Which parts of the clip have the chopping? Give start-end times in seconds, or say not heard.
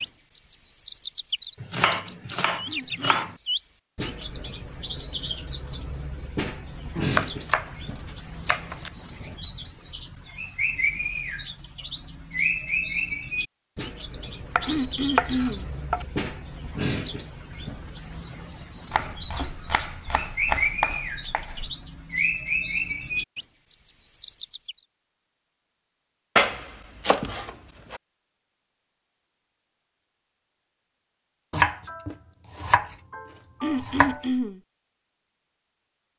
1.6-3.4, 7.0-8.9, 14.6-16.1, 18.9-21.8, 26.4-28.0, 31.5-34.2.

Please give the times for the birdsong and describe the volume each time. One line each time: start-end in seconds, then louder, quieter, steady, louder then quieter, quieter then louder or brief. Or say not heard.
0.0-24.9 steady.